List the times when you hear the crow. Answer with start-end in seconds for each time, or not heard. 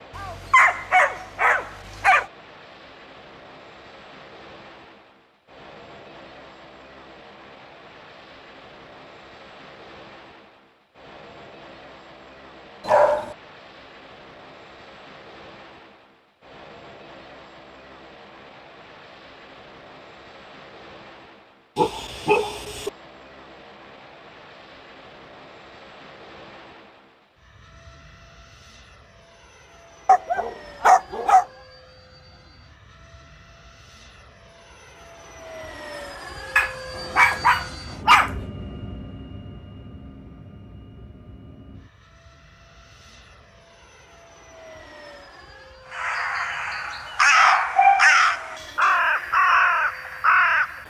45.9-50.8.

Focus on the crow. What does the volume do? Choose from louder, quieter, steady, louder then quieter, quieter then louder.
louder.